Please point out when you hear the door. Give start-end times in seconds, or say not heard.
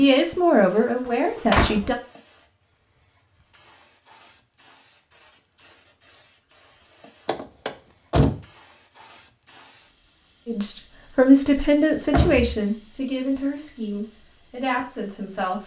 1.1-1.9, 7.2-8.4, 11.6-12.6.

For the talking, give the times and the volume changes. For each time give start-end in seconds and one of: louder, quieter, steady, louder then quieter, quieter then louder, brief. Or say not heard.
0.0-1.9 brief
10.4-15.6 quieter.